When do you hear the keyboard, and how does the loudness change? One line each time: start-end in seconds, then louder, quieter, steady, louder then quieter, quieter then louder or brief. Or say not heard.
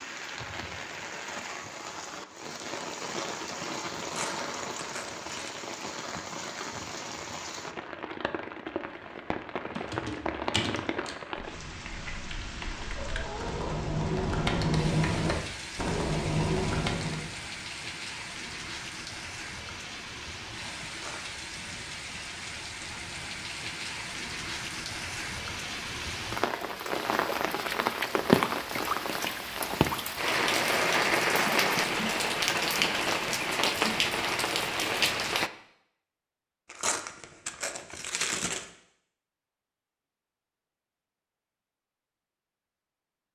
9.8-17.3 quieter then louder.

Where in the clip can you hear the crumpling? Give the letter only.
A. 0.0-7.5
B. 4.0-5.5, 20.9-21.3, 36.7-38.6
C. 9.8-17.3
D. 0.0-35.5
B.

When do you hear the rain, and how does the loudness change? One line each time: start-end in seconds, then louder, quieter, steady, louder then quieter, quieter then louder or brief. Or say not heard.
0.0-35.5 louder.